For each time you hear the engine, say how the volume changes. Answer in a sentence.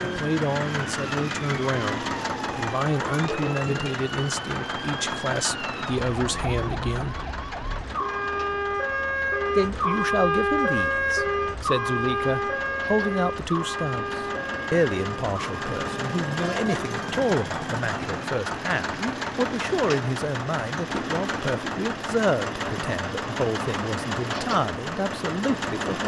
The engine can be heard from 0.0 to 26.0 s, getting quieter then louder.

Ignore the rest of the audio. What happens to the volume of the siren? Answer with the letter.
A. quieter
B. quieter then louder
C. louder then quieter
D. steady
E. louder
C.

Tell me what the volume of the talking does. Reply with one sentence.
The volume of the talking stays about the same.